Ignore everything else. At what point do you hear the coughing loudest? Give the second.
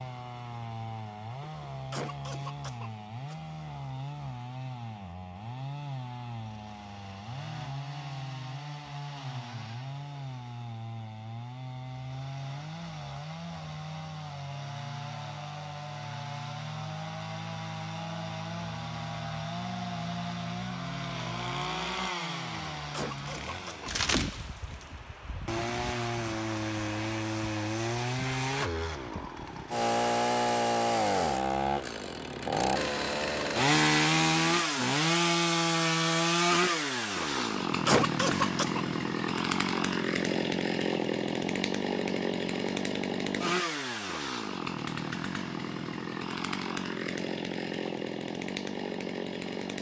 38 s.